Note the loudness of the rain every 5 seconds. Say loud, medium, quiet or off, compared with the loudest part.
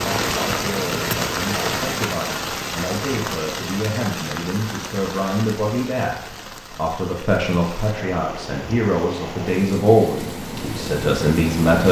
loud, medium, loud.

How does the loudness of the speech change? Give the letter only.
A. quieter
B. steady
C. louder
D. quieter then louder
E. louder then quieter
C.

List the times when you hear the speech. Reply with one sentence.
The speech can be heard from 0.0 to 11.8 s.